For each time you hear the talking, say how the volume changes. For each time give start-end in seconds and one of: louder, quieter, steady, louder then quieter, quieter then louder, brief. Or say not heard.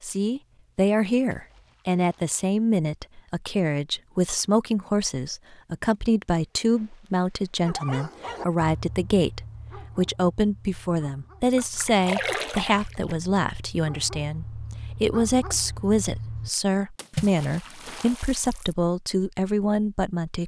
0.0-20.4 steady.